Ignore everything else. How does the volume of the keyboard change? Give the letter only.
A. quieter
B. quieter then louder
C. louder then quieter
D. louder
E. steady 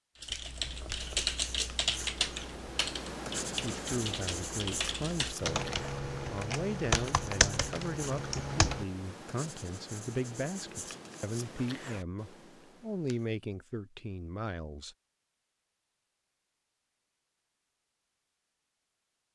B.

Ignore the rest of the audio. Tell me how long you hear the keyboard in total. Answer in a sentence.
You can hear the keyboard for 9 seconds altogether.